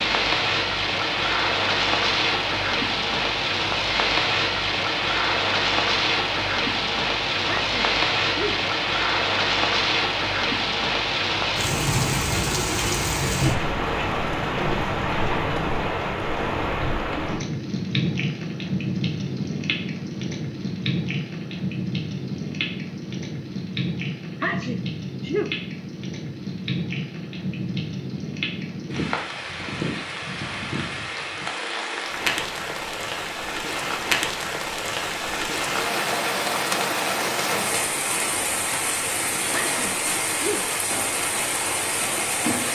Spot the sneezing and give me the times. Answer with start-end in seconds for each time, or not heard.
7.5-8.6, 24.4-25.6, 39.5-40.6.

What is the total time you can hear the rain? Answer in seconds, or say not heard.
43 s.